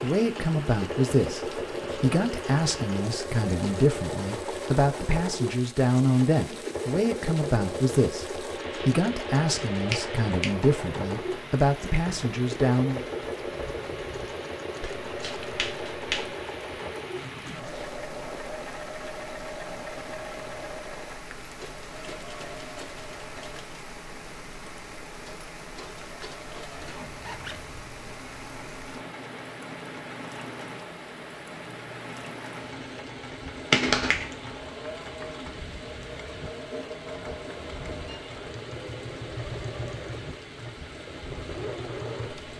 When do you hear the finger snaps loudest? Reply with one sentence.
The loudest moment of the finger snaps is at 34 seconds.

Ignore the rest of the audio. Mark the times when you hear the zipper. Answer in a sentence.
The zipper can be heard from 17.0 to 18.0 s and from 26.8 to 27.9 s.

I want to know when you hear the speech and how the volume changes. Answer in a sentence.
The speech can be heard from 0.0 to 13.0 s, at a steady volume.